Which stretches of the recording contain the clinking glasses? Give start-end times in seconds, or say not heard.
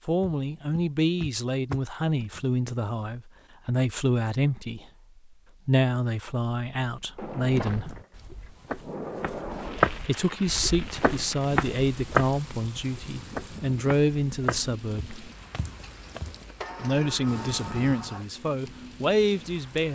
not heard.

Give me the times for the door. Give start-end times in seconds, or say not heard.
0.2-2.5, 7.2-9.8, 16.6-18.2.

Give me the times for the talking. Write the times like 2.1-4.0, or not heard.
0.1-4.8, 5.7-8.0, 10.0-15.2, 16.8-19.9.